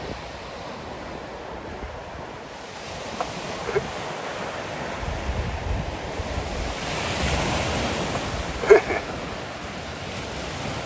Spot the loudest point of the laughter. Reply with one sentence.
The loudest moment of the laughter is at 9 seconds.